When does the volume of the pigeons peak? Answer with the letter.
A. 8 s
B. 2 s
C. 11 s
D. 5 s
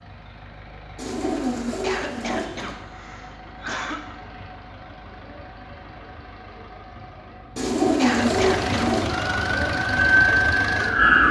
A.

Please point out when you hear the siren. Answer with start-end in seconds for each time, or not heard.
9.1-11.2.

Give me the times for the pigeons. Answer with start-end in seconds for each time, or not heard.
0.9-2.8, 7.5-9.2.